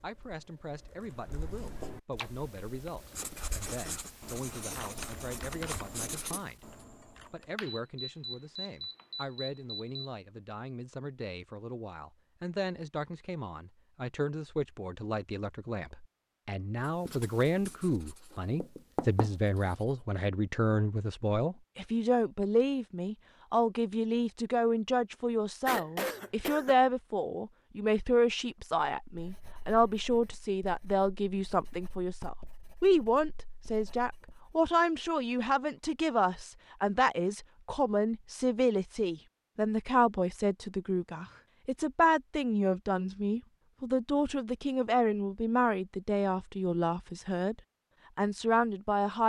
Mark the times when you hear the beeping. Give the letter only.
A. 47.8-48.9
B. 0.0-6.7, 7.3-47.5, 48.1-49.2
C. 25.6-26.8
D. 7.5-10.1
D.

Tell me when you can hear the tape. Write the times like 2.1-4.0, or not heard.
not heard.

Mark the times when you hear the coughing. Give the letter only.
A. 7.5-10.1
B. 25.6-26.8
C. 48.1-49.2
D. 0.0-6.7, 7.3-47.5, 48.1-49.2
B.